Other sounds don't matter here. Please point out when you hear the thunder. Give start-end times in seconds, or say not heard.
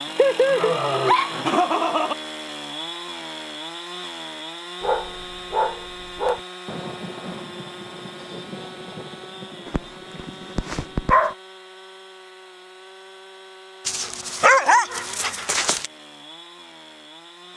6.7-11.2.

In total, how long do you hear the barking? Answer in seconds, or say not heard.
7 s.